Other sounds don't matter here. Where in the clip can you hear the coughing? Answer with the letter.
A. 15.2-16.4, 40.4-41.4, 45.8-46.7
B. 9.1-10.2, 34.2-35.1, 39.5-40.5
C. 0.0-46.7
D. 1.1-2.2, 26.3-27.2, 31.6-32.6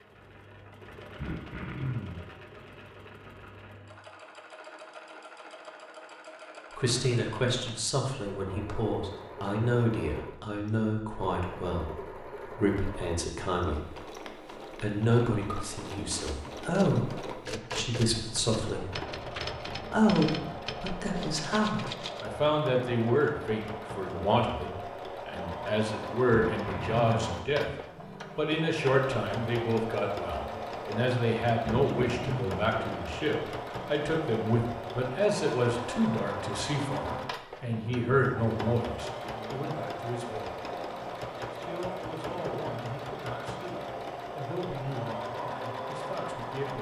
D.